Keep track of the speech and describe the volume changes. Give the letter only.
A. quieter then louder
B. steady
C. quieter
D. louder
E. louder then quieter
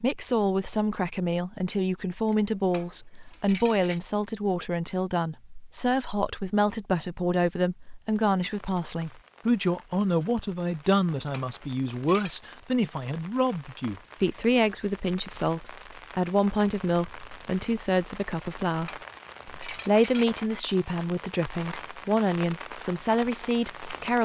B.